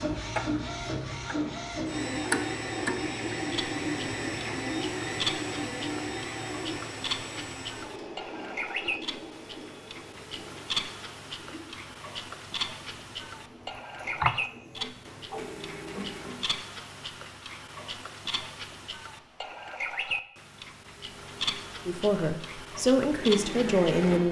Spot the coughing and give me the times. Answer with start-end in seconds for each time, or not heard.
14.2-16.5.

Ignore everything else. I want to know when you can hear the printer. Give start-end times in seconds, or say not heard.
0.0-16.6, 21.0-24.2.